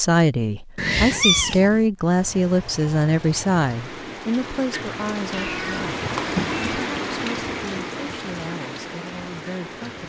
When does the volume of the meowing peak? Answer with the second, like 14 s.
1 s.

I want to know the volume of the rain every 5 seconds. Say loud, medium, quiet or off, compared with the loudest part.
medium, loud.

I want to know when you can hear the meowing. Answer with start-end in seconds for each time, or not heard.
0.8-1.9, 5.3-6.8.